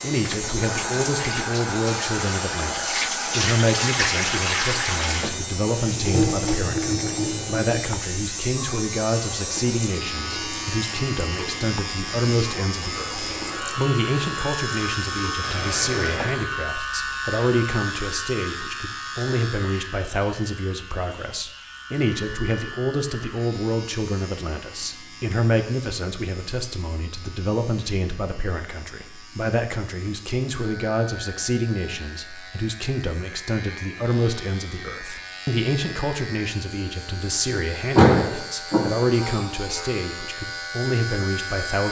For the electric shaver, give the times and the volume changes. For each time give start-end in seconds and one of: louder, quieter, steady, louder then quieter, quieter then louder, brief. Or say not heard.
0.0-41.8 quieter then louder.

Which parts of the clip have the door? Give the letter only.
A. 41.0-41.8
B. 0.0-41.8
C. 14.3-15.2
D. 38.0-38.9
D.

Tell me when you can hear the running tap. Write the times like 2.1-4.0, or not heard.
0.0-16.4.